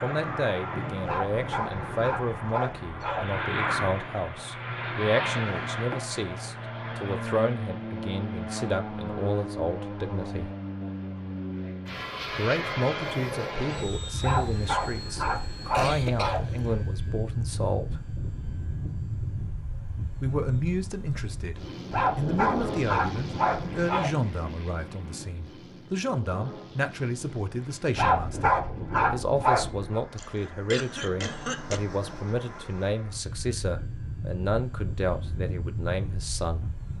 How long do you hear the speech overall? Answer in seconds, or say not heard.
33 s.